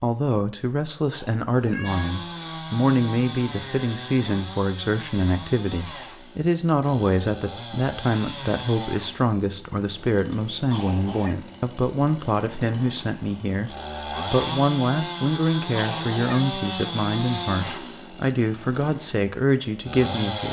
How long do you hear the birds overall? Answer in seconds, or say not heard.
not heard.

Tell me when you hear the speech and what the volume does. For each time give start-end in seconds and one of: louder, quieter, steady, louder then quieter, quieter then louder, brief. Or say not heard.
0.0-20.4 steady.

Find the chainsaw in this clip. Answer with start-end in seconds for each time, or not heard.
1.8-20.4.